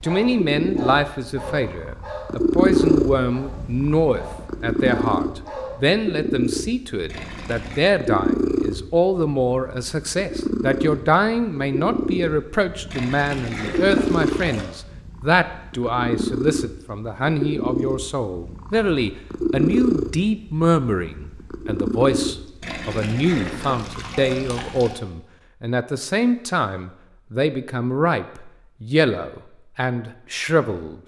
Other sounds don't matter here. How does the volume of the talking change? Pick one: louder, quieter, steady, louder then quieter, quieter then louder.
steady.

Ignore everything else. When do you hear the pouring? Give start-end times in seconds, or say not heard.
7.0-7.8, 12.9-14.7, 22.6-25.0.